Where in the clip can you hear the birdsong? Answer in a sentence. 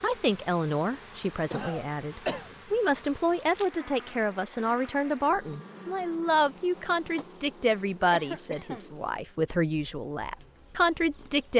The birdsong can't be heard in this clip.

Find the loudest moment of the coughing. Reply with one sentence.
The loudest moment of the coughing is at 2 seconds.